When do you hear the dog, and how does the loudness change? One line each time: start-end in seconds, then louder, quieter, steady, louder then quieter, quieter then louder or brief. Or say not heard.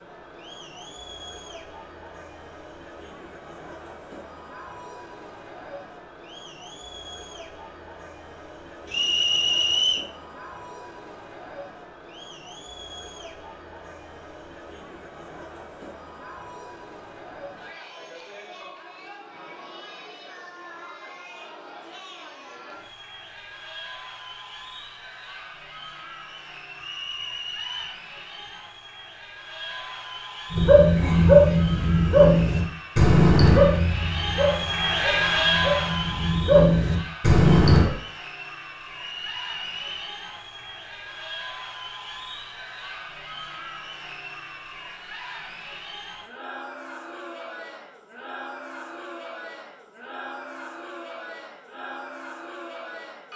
30.5-37.9 quieter then louder.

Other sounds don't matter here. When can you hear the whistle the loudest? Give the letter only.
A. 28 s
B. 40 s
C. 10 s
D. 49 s
C.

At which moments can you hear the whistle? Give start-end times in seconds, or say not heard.
8.9-10.1, 26.8-28.0, 39.0-40.1.